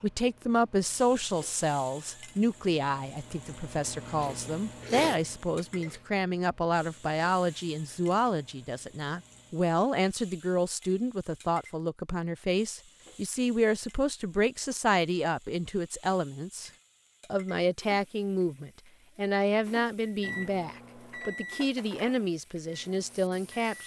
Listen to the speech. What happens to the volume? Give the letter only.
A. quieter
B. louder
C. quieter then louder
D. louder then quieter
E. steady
E.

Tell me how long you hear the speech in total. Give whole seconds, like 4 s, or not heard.
23 s.